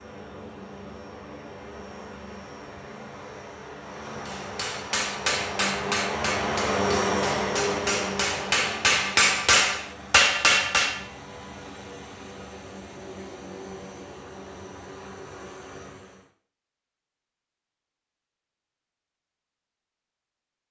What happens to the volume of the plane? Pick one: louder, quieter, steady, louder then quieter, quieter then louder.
louder then quieter.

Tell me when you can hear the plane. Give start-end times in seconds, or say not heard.
0.0-16.3.